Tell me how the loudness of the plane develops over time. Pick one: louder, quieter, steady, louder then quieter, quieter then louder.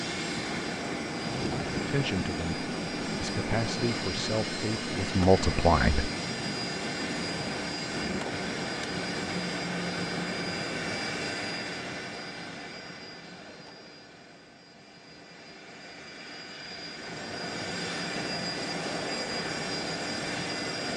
quieter then louder.